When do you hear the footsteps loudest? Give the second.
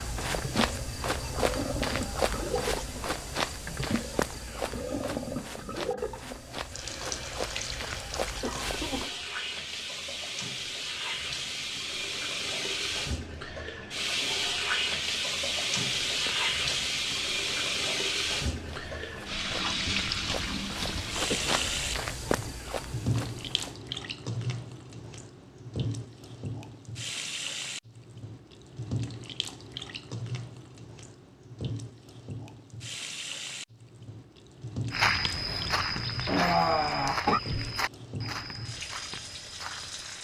35 s.